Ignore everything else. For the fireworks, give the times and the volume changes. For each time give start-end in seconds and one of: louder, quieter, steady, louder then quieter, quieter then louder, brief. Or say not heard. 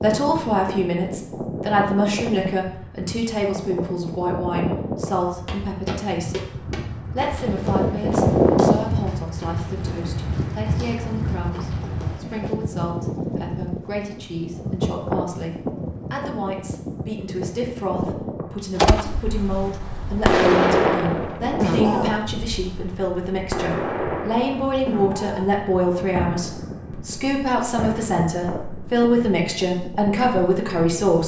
18.8-29.1 quieter.